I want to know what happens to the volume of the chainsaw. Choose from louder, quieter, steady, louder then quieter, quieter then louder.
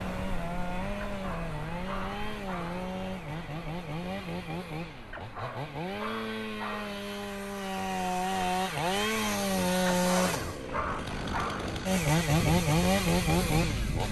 louder.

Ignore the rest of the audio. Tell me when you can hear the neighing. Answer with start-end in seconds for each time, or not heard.
not heard.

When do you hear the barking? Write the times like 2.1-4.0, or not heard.
1.1-2.9, 5.1-7.0, 9.8-11.8.